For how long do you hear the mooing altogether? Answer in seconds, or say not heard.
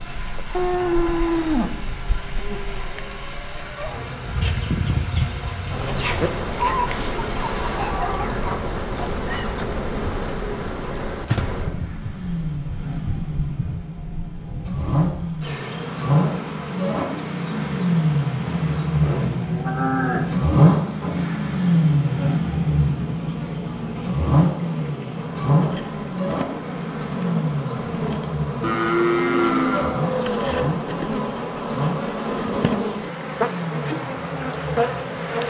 5 s.